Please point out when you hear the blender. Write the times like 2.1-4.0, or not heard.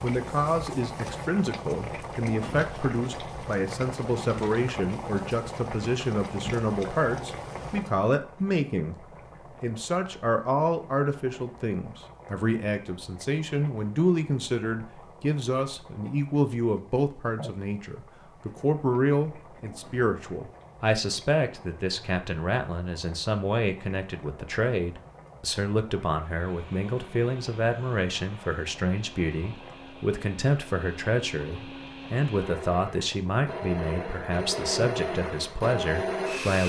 26.2-36.6.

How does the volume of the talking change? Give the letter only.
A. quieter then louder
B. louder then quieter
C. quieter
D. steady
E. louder
D.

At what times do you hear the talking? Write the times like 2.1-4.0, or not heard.
0.0-36.6.